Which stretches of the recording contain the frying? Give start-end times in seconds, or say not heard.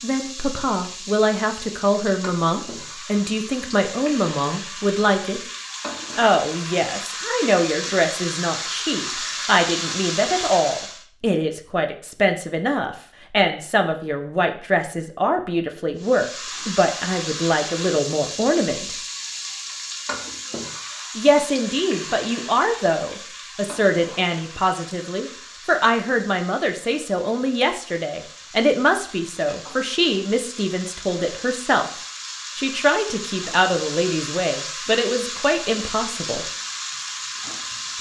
0.0-11.1, 15.9-37.9.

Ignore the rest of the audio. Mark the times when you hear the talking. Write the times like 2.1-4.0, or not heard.
0.0-5.4, 6.2-18.9, 21.1-31.9, 32.5-36.5.